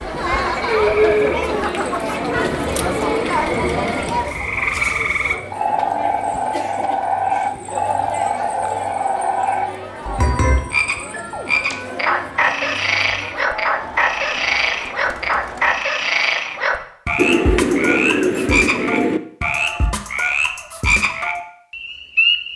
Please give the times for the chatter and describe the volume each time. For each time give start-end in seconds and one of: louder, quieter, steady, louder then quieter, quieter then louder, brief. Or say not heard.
0.0-15.8 quieter.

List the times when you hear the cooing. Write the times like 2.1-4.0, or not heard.
17.1-19.2.